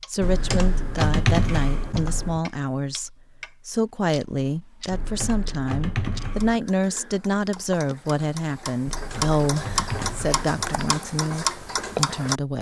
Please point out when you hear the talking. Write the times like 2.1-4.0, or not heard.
0.1-12.5.